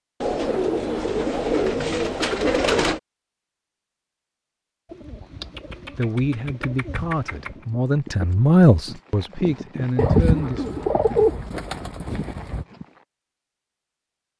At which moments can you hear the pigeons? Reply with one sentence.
You can hear the pigeons from 0.2 to 3.0 s, from 4.9 to 7.7 s and from 9.9 to 12.7 s.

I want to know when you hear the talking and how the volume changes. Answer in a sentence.
The talking can be heard from 6.0 to 10.8 s, getting louder then quieter.